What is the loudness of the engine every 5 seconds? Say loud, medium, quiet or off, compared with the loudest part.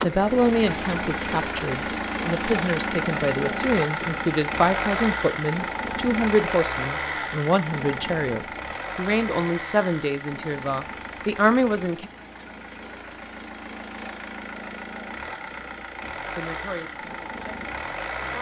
loud, loud, medium, medium.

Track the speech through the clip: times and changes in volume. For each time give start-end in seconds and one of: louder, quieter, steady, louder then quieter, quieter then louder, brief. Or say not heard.
0.0-12.1 steady
16.4-18.3 brief.